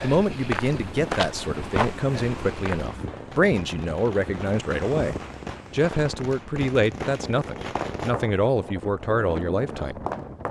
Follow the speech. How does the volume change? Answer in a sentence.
The volume of the speech stays about the same.